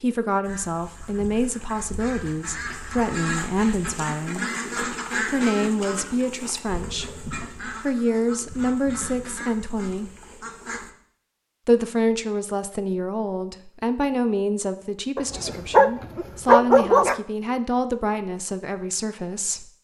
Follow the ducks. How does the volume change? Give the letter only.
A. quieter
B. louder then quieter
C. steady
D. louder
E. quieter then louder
B.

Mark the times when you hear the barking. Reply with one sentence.
The barking can be heard from 15.2 to 17.2 s.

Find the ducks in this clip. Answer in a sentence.
You can hear the ducks from 0.4 to 10.9 s.